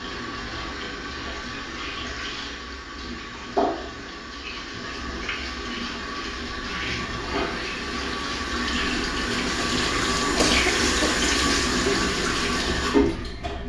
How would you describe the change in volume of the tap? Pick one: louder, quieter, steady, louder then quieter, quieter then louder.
louder.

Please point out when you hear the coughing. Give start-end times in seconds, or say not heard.
10.3-11.2.